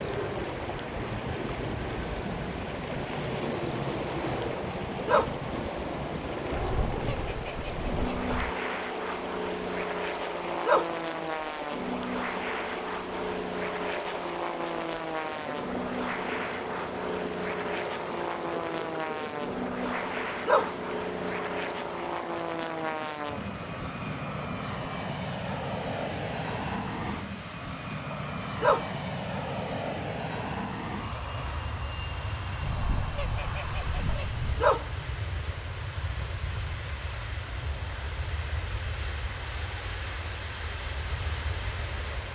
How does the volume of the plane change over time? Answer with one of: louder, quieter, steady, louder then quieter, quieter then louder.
quieter.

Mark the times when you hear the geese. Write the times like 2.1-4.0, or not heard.
6.5-8.6, 32.6-34.6.